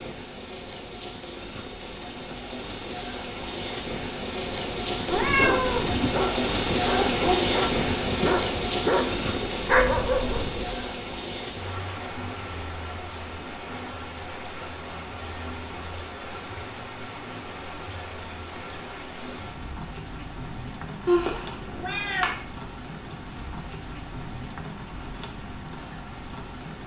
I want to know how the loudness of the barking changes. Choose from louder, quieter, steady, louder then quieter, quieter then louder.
louder.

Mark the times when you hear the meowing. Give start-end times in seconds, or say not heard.
5.0-5.9, 21.1-22.4.